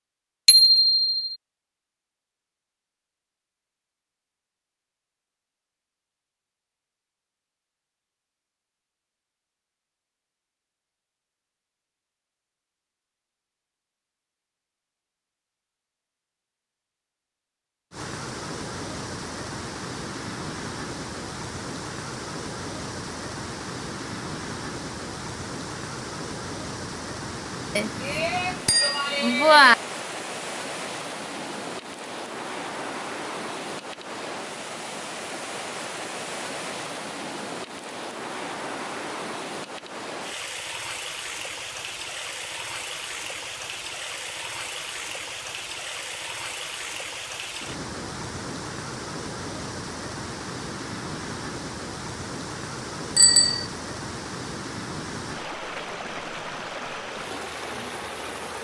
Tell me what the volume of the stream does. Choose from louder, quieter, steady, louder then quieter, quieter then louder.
steady.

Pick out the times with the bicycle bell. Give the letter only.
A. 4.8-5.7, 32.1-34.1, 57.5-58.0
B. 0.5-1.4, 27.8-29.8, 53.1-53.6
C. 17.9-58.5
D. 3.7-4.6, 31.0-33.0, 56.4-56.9
B.